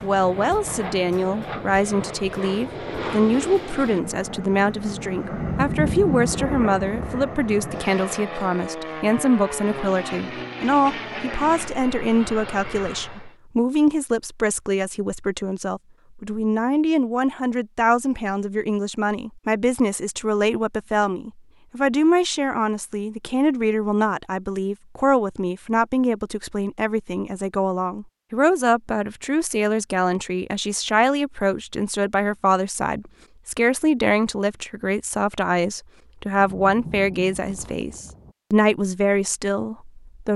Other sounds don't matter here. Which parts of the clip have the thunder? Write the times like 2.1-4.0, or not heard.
5.3-7.2, 36.4-38.4.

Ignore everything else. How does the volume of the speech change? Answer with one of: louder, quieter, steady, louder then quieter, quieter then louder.
steady.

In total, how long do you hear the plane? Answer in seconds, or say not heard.
13 s.